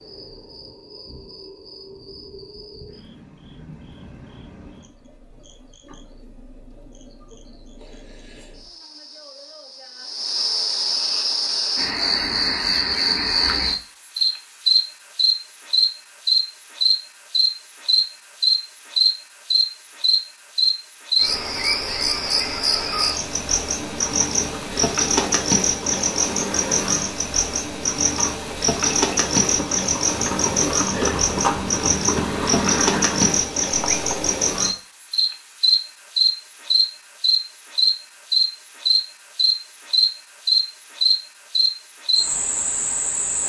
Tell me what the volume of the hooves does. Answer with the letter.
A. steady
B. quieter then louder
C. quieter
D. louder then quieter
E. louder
E.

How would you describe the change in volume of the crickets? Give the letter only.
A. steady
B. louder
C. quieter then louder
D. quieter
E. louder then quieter
B.